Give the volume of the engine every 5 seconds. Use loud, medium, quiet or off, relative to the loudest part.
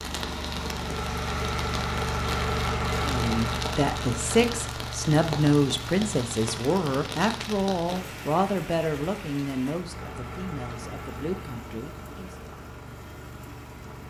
loud, medium, medium.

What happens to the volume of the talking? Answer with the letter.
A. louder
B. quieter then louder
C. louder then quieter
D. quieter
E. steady
D.